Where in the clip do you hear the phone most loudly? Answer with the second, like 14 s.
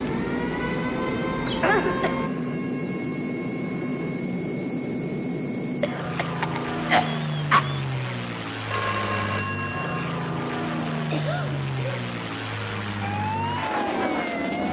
9 s.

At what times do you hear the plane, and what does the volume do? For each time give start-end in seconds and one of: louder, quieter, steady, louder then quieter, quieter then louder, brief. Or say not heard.
0.0-14.6 steady.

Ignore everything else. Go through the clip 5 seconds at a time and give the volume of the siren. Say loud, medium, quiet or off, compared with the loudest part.
loud, off, loud.